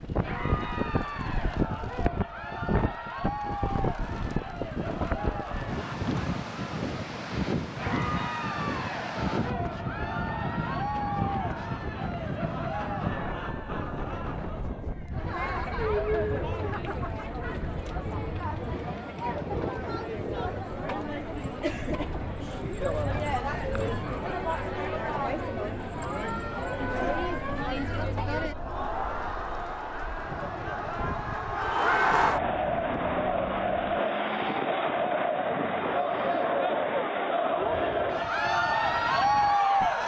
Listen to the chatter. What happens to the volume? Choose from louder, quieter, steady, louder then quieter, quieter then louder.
louder.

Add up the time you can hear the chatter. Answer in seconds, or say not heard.
40 s.